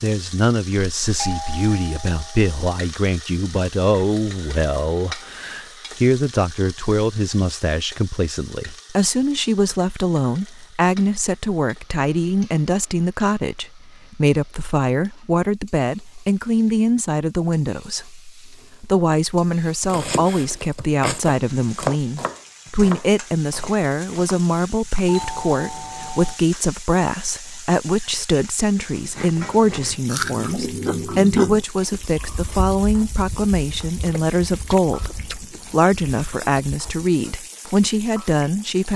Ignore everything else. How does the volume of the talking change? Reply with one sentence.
The loudness of the talking stays about the same.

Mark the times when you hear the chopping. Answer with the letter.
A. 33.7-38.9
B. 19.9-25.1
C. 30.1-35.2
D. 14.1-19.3
B.